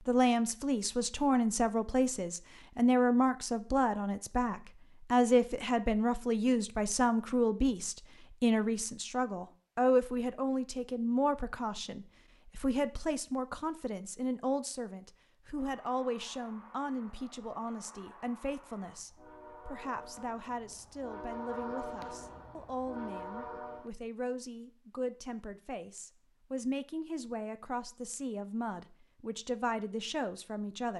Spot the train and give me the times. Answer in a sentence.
The train can be heard from 15.5 to 23.9 s.